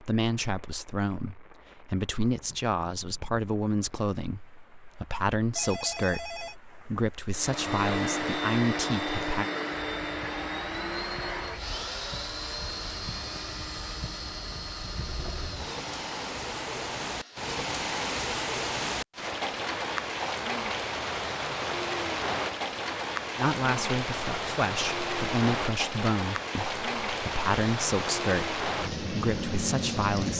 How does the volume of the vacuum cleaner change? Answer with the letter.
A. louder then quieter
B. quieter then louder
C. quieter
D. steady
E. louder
C.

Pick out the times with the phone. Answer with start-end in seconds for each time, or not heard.
5.5-6.5.